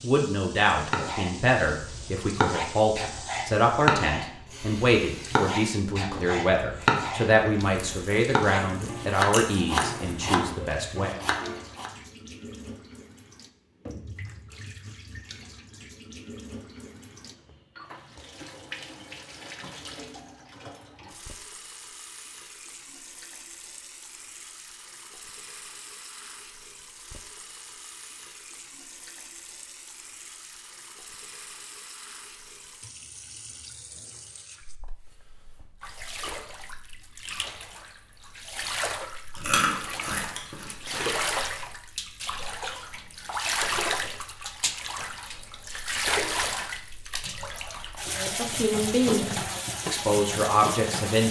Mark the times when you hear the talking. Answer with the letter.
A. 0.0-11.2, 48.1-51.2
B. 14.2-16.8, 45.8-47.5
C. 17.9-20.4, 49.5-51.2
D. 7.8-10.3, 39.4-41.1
A.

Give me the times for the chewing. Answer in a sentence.
You can hear the chewing from 7.8 to 10.3 s and from 39.4 to 41.1 s.